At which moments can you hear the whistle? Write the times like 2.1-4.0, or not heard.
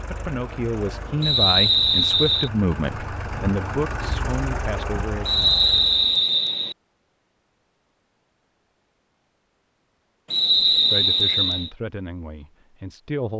1.2-2.5, 5.2-6.8, 10.3-11.7.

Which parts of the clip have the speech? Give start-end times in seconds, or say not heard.
0.1-5.3, 10.7-13.3.